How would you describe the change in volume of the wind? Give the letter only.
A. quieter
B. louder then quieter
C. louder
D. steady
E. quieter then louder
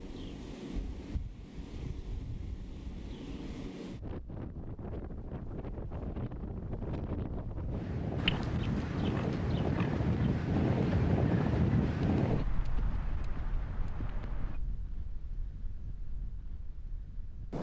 B.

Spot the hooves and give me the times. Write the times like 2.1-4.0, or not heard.
8.2-14.6.